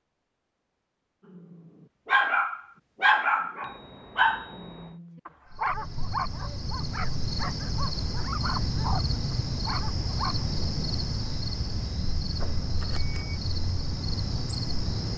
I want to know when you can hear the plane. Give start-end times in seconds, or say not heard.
not heard.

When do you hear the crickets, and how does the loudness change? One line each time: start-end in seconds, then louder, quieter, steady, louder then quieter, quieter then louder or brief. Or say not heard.
5.5-15.1 steady.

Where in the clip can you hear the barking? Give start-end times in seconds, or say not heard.
1.3-10.4.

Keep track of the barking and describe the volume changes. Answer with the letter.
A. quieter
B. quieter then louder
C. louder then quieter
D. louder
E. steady
A.